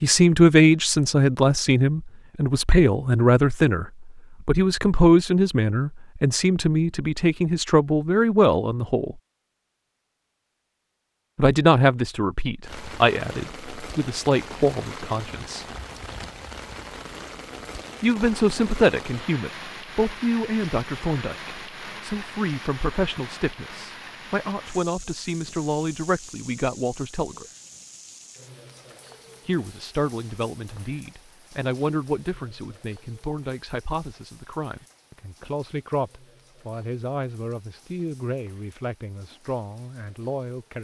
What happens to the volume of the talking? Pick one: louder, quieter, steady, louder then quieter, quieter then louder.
quieter.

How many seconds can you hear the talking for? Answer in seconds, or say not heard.
34 s.